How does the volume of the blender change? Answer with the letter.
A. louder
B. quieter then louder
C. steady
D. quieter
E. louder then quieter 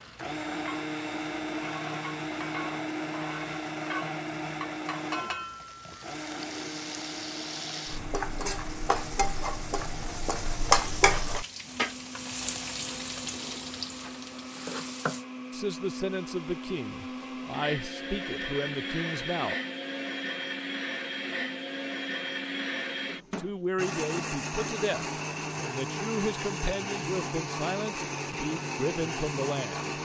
B.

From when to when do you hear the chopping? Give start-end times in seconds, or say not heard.
not heard.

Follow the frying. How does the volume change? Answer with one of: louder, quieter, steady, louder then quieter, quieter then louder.
louder then quieter.